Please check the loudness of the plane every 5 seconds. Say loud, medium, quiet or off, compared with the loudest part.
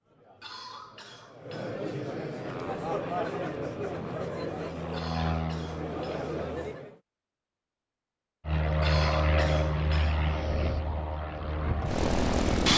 quiet, loud, loud.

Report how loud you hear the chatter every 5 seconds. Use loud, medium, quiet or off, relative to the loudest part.
loud, loud, off.